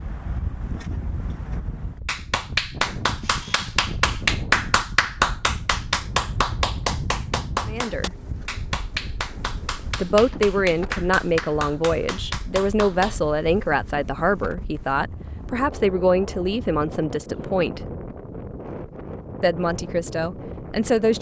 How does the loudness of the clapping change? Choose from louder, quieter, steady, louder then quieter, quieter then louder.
quieter.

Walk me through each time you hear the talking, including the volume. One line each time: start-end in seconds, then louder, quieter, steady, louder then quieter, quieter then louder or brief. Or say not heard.
7.7-8.1 brief
9.9-17.8 steady
19.4-21.1 brief.